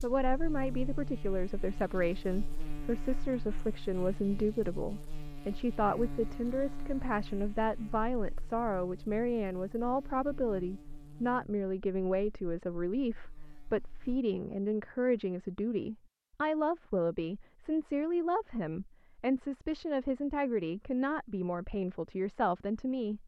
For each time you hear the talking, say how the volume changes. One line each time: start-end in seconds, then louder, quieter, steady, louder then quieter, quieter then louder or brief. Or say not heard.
0.0-23.2 steady.